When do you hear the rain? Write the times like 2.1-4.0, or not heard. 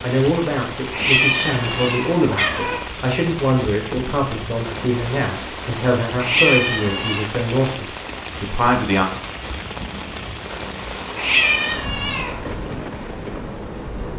0.0-14.1.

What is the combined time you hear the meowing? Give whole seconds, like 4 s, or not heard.
4 s.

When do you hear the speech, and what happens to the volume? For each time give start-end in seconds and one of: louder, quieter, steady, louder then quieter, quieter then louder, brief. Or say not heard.
0.0-9.1 steady.